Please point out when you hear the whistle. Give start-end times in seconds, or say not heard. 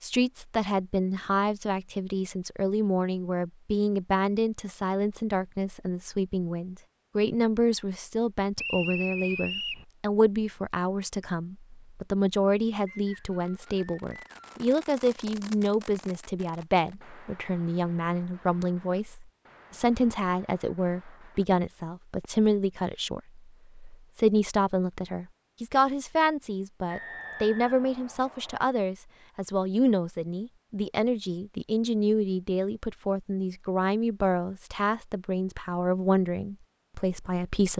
8.6-9.8, 12.8-14.5, 26.9-28.6.